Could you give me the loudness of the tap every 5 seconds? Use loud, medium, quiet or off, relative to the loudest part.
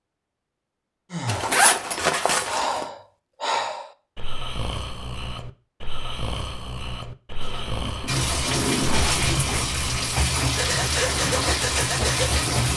off, loud, loud.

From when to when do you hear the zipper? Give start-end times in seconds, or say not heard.
1.2-2.9, 7.4-9.1.